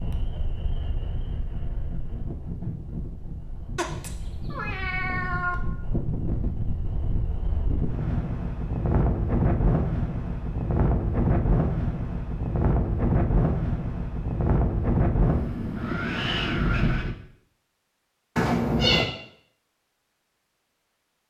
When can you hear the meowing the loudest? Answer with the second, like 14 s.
19 s.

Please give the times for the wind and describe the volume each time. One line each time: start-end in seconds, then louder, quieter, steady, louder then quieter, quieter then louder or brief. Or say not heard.
0.0-17.1 louder.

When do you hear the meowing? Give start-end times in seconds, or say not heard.
3.8-5.5, 18.4-19.1.